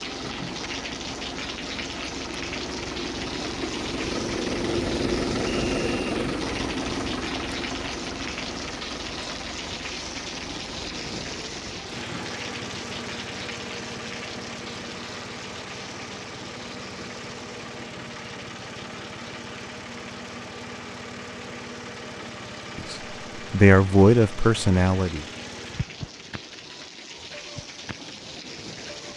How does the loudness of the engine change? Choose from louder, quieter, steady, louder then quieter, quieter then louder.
quieter.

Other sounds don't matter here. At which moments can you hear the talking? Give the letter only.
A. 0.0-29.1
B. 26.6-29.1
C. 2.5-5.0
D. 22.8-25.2
D.